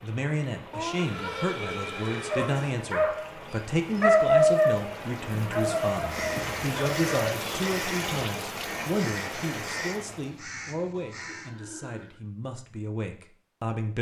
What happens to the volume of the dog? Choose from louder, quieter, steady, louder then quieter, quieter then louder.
louder then quieter.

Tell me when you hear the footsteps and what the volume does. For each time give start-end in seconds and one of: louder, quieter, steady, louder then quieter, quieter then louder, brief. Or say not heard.
not heard.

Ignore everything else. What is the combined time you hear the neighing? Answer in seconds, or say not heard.
4 s.